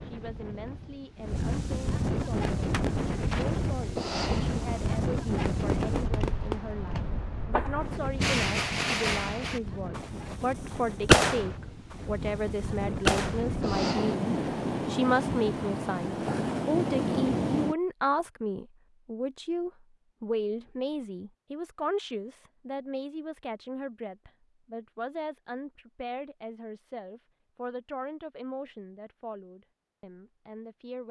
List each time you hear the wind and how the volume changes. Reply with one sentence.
You can hear the wind from 0.0 to 17.8 s, getting quieter then louder.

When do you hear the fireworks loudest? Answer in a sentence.
The loudest moment of the fireworks is at 11 seconds.